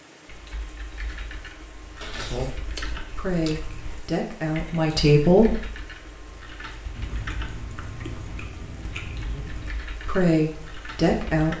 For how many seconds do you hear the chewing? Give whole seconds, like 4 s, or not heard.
5 s.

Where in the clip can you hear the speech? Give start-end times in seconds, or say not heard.
2.3-5.6, 9.3-11.5.